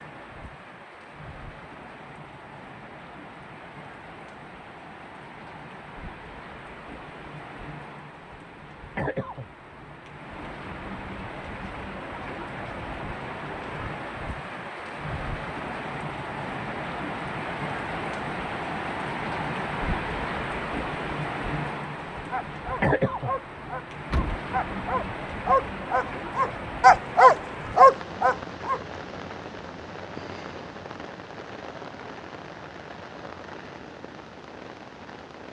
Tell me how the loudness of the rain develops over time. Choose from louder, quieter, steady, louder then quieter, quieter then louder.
louder then quieter.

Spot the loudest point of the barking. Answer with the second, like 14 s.
28 s.